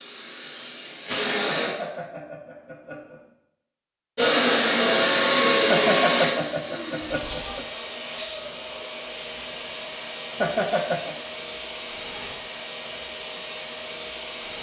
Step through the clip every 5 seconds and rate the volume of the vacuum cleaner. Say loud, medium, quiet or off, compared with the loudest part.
loud, loud, medium.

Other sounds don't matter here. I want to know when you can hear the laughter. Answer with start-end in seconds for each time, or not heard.
1.4-3.2, 5.7-7.7, 10.4-11.2.